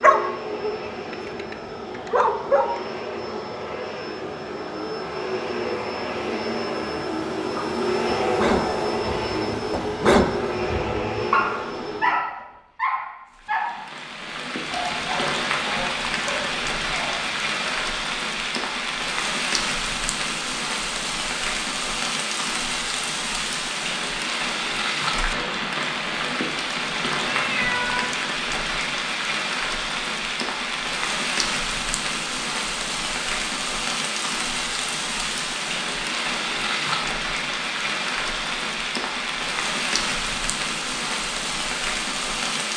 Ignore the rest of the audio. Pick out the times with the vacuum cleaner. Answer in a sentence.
The vacuum cleaner can be heard from 0.0 to 12.2 s.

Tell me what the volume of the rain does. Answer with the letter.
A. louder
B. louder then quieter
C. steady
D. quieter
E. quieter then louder
C.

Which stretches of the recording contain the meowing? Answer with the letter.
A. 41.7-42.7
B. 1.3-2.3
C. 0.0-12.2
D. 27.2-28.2
D.